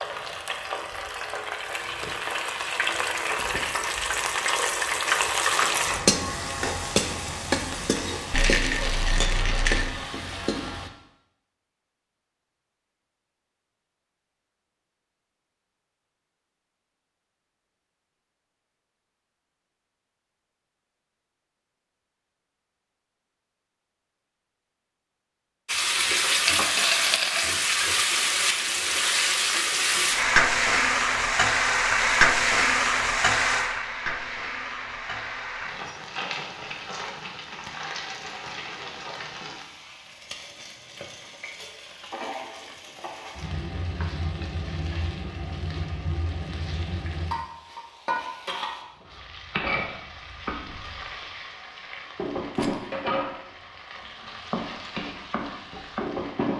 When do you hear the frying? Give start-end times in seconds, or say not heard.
0.0-10.9, 25.6-56.5.